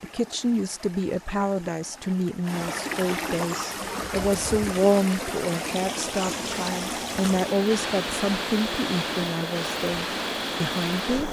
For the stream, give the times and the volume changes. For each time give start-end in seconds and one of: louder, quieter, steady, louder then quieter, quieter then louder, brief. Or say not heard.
0.0-11.2 louder.